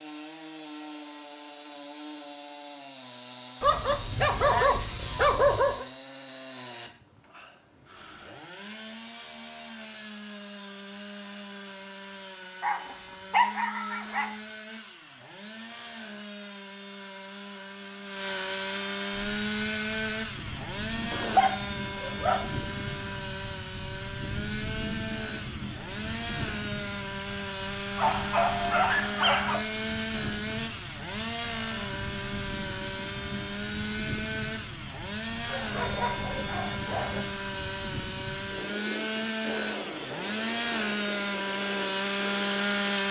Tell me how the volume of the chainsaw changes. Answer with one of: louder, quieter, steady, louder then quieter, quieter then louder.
louder.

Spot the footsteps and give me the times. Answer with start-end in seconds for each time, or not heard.
not heard.